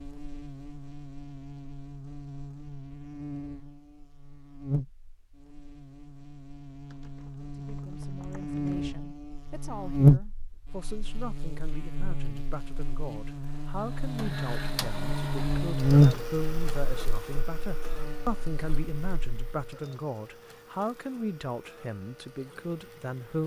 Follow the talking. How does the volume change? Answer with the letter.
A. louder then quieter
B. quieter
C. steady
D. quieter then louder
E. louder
E.